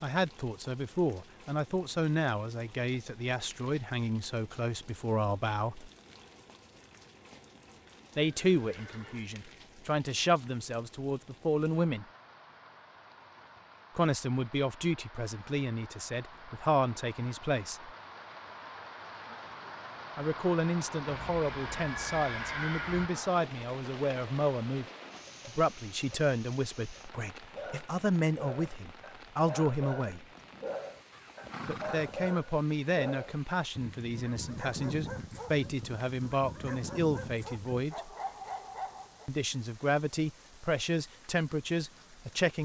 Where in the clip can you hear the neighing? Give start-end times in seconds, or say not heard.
8.4-9.3, 21.1-23.1, 31.1-32.1.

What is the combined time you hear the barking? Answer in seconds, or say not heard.
12 s.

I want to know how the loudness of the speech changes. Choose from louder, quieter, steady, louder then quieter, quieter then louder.
steady.